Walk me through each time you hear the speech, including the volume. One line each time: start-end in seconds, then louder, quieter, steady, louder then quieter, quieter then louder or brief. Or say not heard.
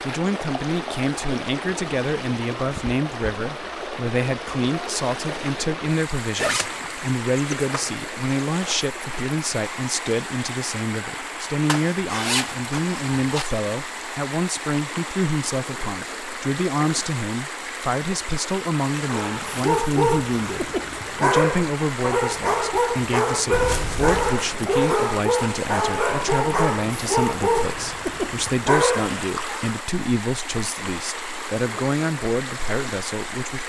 0.0-33.6 steady.